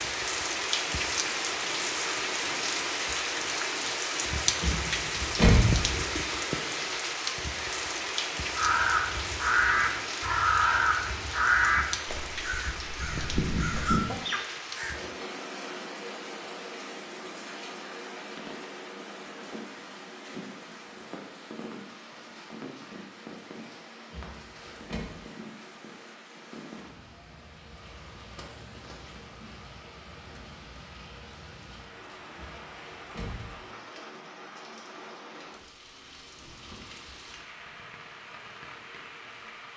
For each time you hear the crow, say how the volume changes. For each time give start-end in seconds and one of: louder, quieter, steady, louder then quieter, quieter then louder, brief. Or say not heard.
8.6-14.9 quieter then louder.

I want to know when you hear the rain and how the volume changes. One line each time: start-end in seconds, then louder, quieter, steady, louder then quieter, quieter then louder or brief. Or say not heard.
0.0-39.7 quieter.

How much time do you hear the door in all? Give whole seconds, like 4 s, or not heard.
3 s.